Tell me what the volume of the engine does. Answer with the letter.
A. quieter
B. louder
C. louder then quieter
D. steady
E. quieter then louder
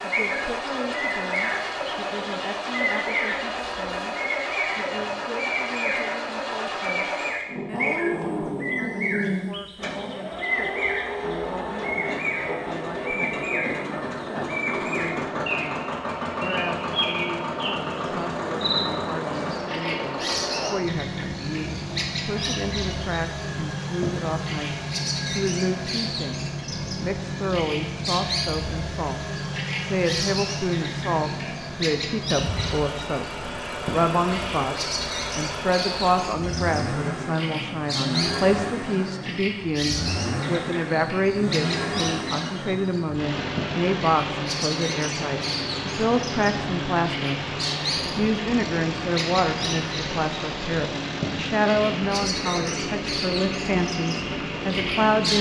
D.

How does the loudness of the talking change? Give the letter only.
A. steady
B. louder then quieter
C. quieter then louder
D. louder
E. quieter
D.